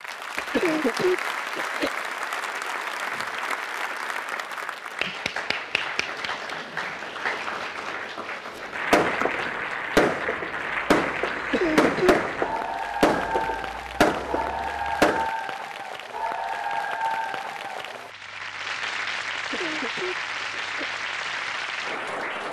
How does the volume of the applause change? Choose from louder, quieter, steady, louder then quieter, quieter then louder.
steady.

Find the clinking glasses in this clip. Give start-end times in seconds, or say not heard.
not heard.